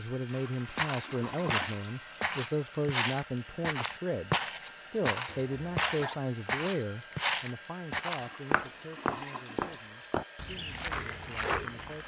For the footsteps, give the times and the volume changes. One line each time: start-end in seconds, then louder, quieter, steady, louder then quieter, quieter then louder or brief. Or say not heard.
0.8-12.0 steady.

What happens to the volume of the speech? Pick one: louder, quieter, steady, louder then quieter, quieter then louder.
quieter.